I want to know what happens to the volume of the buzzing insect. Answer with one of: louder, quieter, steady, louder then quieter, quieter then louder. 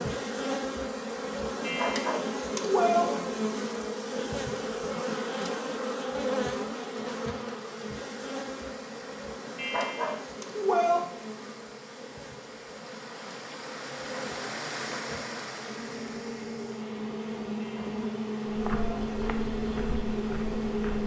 quieter then louder.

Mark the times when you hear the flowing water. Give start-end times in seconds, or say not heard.
7.0-21.0.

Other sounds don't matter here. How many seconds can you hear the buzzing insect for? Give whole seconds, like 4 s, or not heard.
21 s.